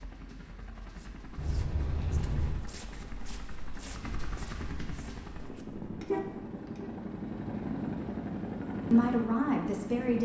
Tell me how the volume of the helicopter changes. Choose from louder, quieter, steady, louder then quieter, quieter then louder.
louder.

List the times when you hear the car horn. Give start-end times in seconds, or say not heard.
1.4-2.6, 6.0-6.9.